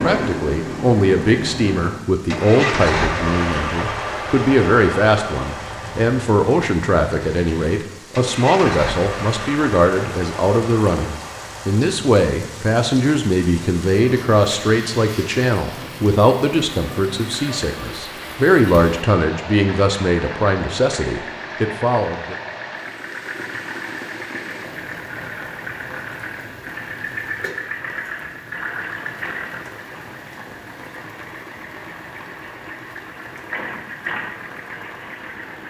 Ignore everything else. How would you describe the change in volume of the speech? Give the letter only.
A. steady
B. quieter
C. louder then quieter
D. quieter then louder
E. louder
A.